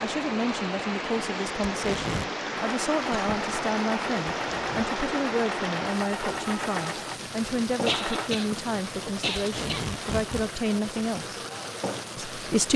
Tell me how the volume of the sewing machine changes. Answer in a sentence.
The loudness of the sewing machine goes down.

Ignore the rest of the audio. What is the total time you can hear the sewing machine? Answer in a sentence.
You can hear the sewing machine for 6 seconds altogether.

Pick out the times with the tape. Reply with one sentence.
The tape can be heard from 1.6 to 2.3 s, from 4.5 to 4.9 s and from 9.3 to 10.5 s.